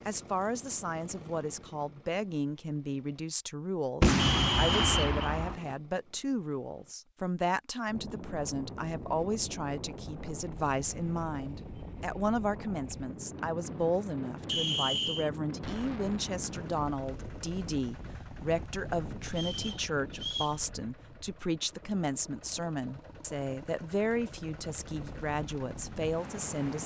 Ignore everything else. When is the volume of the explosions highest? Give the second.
4 s.